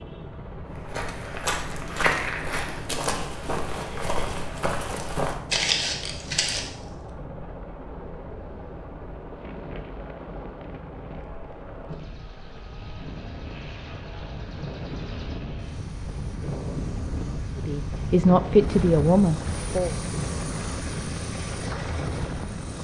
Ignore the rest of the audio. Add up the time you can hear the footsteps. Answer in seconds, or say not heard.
6 s.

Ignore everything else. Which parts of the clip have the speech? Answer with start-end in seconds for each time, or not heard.
17.6-19.9.